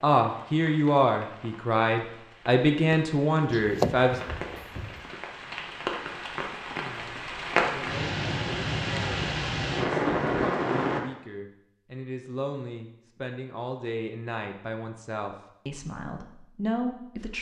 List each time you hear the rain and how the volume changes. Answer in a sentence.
You can hear the rain from 0.1 to 11.0 s, getting louder.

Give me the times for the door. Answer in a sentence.
The door can be heard from 3.5 to 5.0 s.